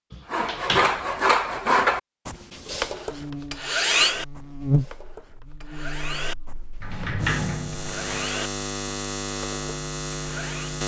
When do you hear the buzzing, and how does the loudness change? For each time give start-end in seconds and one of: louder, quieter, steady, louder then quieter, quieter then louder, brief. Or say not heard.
3.1-10.8 quieter then louder.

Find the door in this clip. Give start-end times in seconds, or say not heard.
0.1-1.1, 6.8-8.2.